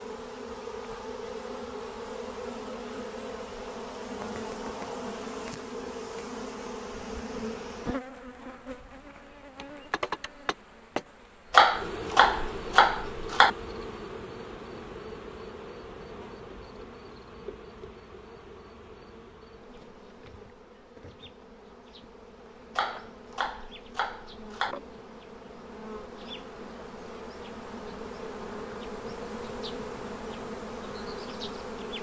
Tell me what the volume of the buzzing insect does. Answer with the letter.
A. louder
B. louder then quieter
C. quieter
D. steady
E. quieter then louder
E.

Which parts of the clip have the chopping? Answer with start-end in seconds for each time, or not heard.
11.5-13.5, 22.8-24.8.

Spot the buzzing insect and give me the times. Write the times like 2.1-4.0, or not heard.
0.0-31.9.